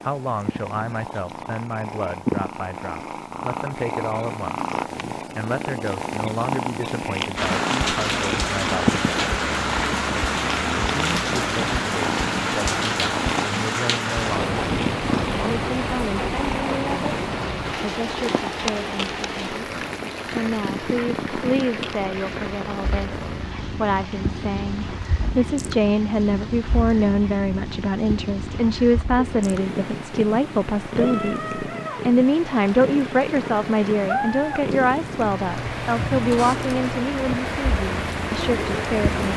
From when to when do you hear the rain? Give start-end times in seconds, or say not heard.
7.3-39.3.